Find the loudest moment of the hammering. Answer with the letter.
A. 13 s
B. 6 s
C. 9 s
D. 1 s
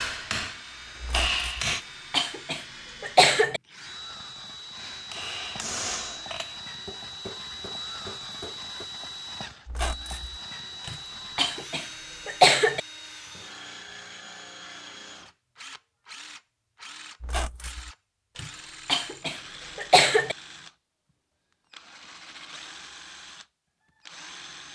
D.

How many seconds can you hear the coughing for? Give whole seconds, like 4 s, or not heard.
6 s.